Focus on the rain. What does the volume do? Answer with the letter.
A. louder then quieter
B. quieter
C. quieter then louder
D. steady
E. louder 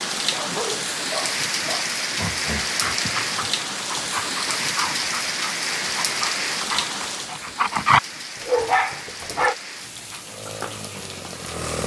B.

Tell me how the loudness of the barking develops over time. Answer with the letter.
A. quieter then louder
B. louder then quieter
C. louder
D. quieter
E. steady
C.